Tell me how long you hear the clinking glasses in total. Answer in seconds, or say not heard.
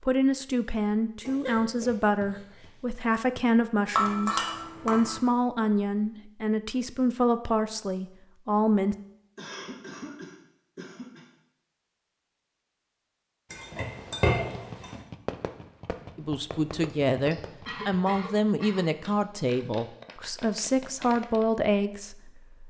3 s.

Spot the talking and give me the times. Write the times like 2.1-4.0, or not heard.
0.0-8.9, 16.1-22.6.